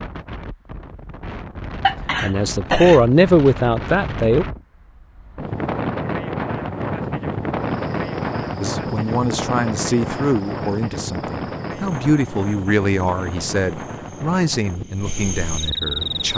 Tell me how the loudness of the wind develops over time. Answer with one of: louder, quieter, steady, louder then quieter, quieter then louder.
louder then quieter.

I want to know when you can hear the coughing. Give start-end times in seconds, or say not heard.
1.8-3.2.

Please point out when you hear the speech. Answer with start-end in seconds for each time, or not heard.
2.2-4.5, 8.6-16.3.